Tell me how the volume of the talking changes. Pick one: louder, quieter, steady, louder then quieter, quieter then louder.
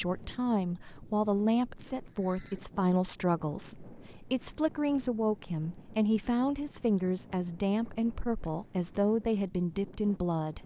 steady.